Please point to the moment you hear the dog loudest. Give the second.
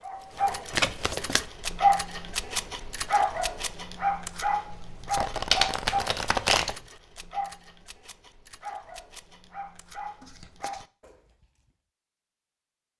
2 s.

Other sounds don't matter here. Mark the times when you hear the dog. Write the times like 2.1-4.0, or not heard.
0.0-11.4.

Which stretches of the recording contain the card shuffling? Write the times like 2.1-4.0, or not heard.
0.7-1.4, 4.7-6.8, 10.2-10.8.